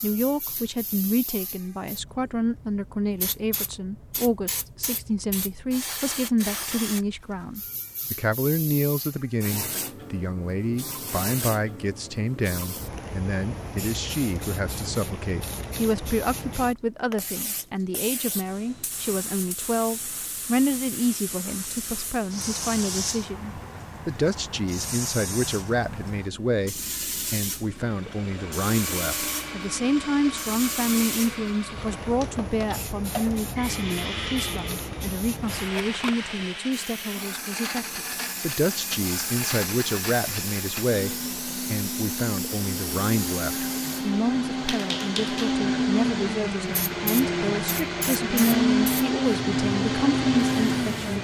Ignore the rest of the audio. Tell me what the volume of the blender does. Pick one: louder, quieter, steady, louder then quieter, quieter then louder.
louder.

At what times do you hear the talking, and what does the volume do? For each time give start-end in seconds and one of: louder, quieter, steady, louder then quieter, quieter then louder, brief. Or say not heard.
0.0-51.1 steady.